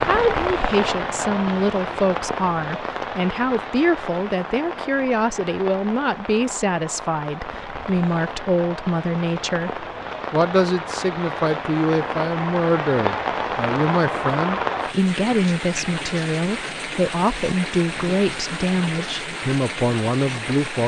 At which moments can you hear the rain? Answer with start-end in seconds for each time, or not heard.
0.0-20.8.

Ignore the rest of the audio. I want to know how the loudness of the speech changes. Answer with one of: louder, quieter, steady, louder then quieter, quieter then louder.
steady.